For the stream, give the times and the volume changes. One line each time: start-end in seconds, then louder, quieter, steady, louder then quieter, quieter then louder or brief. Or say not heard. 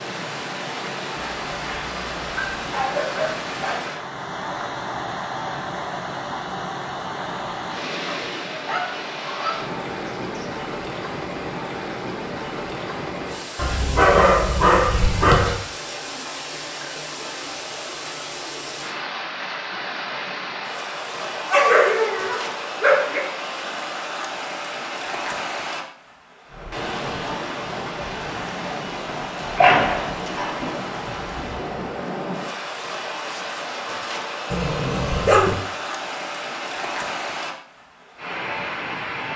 0.0-39.3 steady.